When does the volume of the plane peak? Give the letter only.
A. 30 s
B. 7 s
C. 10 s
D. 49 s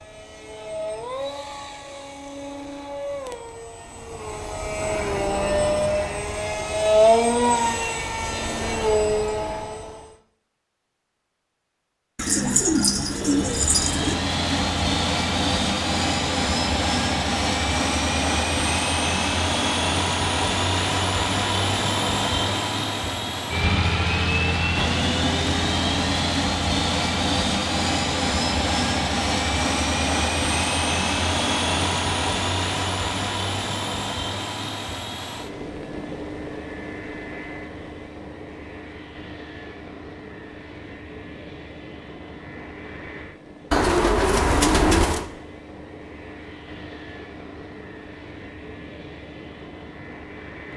B.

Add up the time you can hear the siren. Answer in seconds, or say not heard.
not heard.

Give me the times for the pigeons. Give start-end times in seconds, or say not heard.
12.2-14.2, 43.7-45.2.